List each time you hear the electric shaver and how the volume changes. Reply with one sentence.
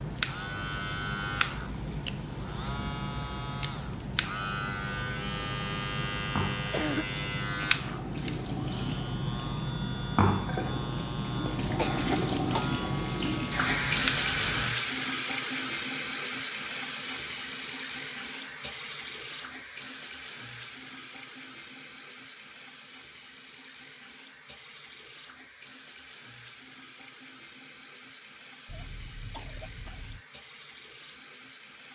The electric shaver can be heard from 0.0 to 14.8 s, at a steady volume.